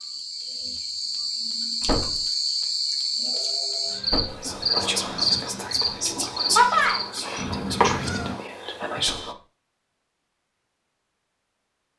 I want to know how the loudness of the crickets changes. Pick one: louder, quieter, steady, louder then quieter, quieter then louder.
louder.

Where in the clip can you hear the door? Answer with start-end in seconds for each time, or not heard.
1.8-2.2, 4.0-4.5, 9.0-9.4.